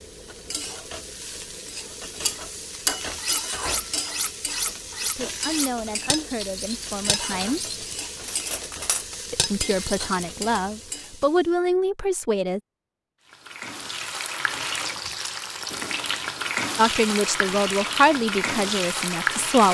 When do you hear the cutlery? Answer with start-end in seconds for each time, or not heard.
2.2-10.2.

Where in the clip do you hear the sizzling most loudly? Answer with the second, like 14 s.
19 s.